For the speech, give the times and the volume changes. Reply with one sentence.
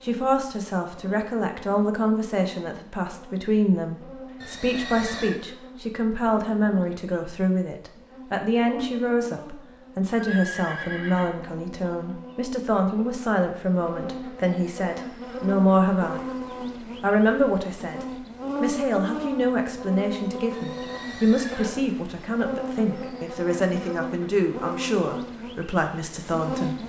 The speech can be heard from 0.0 to 26.8 s, at a steady volume.